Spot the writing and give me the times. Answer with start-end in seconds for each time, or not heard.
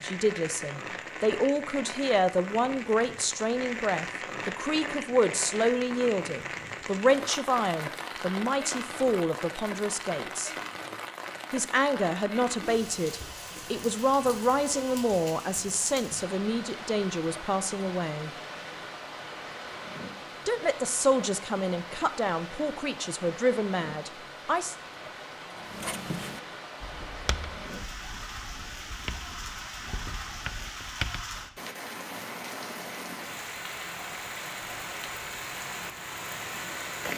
25.6-31.6.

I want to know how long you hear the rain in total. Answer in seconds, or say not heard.
37 s.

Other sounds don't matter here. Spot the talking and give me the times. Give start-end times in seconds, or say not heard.
0.0-10.5, 11.5-18.3, 20.4-24.8.